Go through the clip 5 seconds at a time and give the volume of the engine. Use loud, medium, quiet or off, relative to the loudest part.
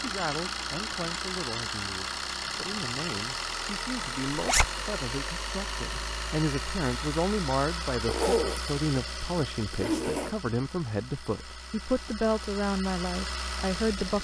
loud, loud, medium.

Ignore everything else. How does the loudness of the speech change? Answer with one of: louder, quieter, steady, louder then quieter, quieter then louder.
louder.